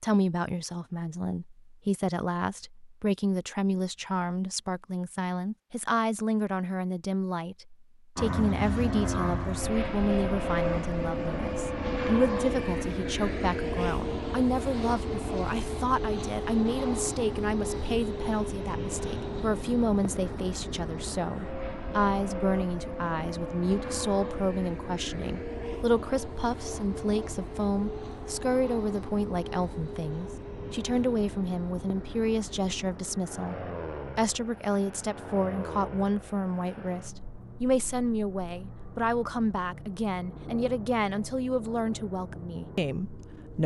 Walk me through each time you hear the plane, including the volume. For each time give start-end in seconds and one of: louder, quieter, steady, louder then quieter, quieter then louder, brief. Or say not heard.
8.2-43.6 quieter.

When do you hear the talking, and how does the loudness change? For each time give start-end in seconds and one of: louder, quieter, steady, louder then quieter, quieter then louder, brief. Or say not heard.
0.0-43.6 steady.